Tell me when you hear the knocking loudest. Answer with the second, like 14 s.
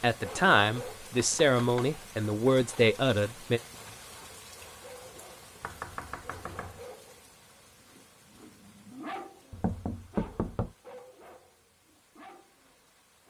10 s.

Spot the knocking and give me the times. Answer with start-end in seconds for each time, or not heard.
1.1-1.9, 5.6-6.8, 9.5-10.8.